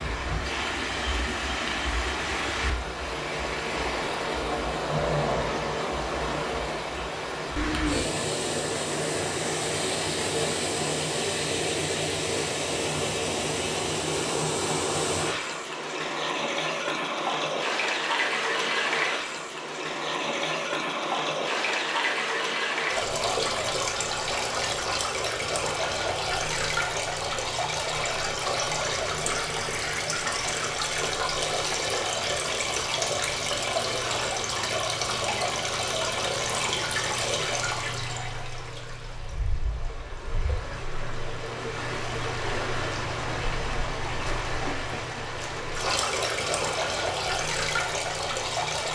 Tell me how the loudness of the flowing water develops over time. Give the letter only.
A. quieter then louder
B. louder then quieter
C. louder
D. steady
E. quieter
D.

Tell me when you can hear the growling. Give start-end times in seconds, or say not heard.
4.8-5.7.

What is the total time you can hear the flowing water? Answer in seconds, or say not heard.
49 s.